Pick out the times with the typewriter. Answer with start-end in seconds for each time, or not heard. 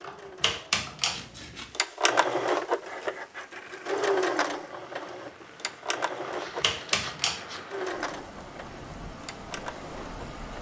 0.0-1.2, 6.2-7.4.